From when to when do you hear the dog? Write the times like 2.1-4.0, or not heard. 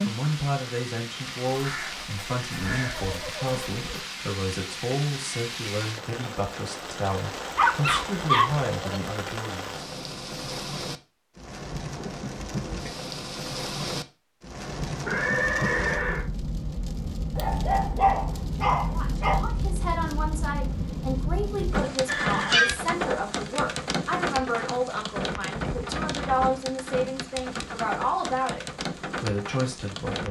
7.5-9.0, 17.4-19.4.